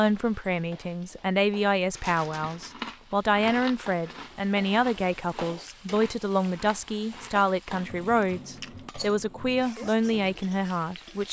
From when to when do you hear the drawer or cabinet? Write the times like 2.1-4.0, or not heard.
not heard.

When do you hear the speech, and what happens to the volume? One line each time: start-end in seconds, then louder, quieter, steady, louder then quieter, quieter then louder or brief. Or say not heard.
0.0-11.2 steady.